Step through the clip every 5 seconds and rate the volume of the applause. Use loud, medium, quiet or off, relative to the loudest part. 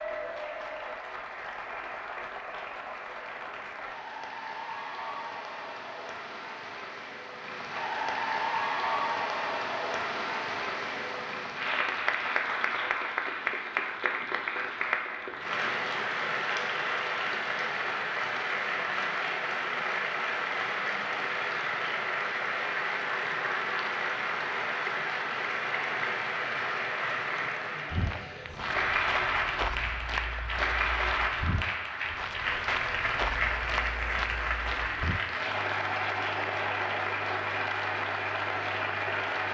medium, loud, loud, loud, loud, loud, loud, loud.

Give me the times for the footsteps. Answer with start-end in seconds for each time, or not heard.
27.9-35.2.